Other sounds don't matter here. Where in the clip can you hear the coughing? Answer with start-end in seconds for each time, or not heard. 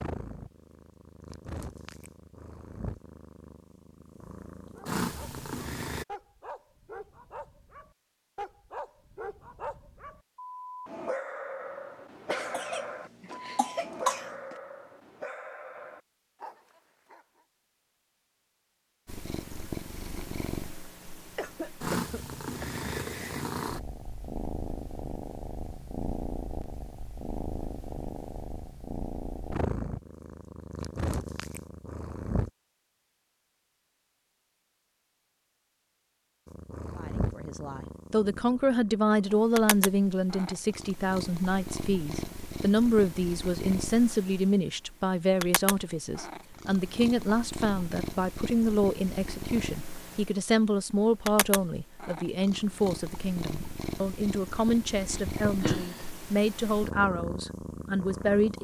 12.3-14.6, 21.4-22.9, 55.0-56.1.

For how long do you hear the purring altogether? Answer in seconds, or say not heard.
42 s.